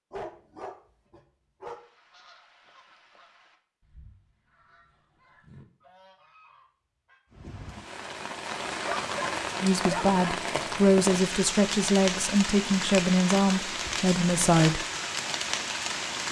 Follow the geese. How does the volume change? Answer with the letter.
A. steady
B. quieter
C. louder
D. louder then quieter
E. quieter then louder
E.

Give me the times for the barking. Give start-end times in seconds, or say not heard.
0.1-1.8, 8.8-10.2.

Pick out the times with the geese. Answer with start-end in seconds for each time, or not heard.
1.6-7.2.